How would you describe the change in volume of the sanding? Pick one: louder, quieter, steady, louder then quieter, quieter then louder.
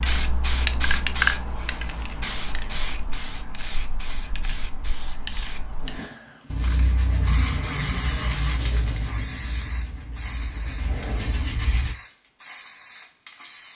quieter then louder.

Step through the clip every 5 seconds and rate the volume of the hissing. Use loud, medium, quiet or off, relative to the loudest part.
loud, medium, quiet.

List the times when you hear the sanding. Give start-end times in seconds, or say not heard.
5.8-11.9.